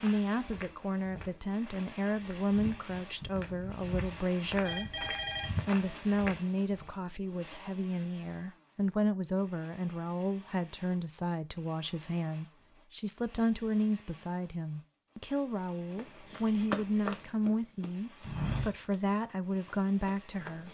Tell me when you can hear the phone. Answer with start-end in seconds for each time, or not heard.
4.7-5.7.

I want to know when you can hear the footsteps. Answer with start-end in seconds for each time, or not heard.
0.0-6.9, 15.9-20.6.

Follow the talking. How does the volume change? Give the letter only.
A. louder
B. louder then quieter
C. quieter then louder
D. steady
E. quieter
D.